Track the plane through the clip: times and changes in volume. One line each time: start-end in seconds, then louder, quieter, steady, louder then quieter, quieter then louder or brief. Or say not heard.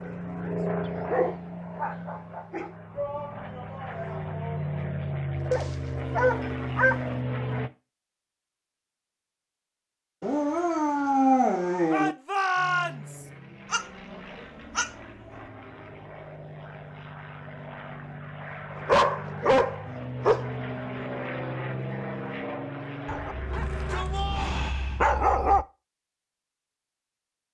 0.0-7.7 quieter then louder
12.6-24.4 louder.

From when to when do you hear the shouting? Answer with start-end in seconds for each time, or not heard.
2.9-4.7, 11.9-13.3, 23.5-24.6.